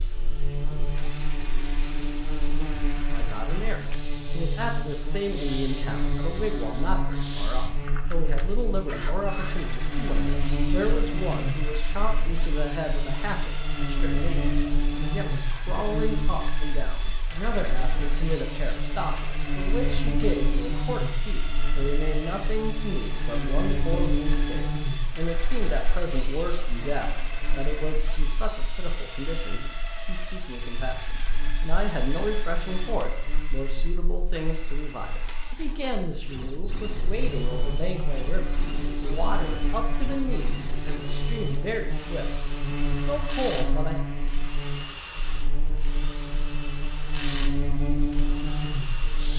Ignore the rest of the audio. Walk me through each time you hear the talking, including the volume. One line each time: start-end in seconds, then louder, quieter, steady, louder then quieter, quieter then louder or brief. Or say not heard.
3.1-44.0 steady.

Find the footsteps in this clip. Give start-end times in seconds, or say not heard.
not heard.